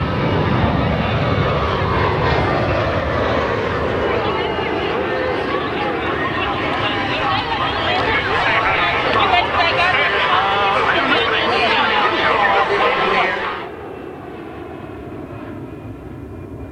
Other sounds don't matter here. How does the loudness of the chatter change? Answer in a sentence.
The loudness of the chatter goes up.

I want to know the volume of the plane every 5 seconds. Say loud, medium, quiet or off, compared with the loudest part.
loud, medium, quiet, quiet.